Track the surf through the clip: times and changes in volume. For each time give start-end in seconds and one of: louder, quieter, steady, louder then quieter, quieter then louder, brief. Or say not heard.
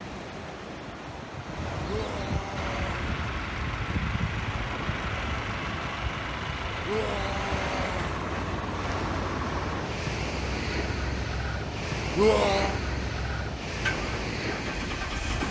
0.0-15.4 steady.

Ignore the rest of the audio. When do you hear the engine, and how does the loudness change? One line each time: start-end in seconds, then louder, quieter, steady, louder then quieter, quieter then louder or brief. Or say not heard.
2.5-15.4 steady.